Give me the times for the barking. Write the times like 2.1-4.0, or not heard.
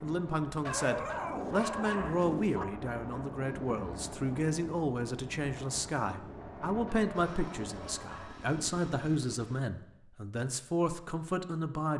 0.7-2.6, 6.8-8.6.